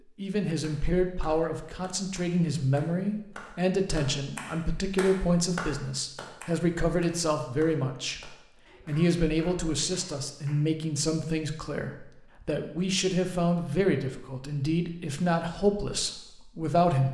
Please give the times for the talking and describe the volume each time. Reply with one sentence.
The talking can be heard from 0.1 to 17.0 s, at a steady volume.